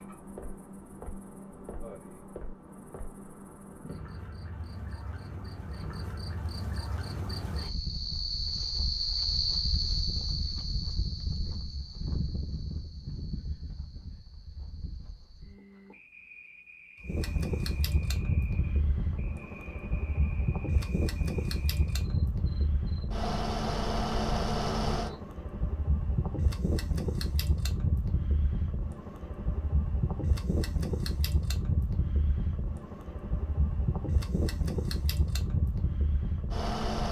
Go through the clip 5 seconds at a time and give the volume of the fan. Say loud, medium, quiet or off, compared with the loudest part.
off, off, off, loud, loud, loud, loud, loud.